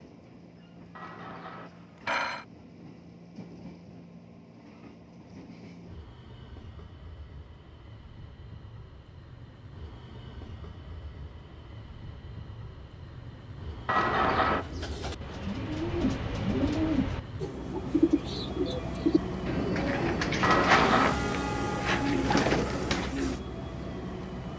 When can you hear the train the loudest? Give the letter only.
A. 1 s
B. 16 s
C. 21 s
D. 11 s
C.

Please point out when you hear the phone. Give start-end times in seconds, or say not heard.
0.9-2.5, 13.8-14.7, 20.4-21.2.